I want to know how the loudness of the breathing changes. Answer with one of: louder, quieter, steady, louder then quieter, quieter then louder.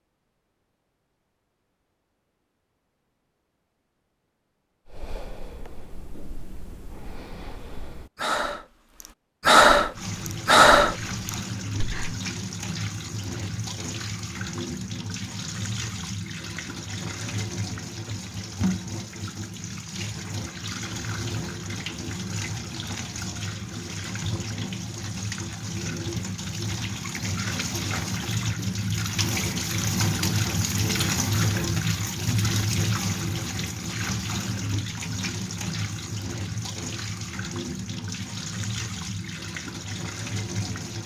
louder.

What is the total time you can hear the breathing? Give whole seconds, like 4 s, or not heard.
7 s.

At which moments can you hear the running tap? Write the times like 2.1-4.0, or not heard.
9.9-41.0.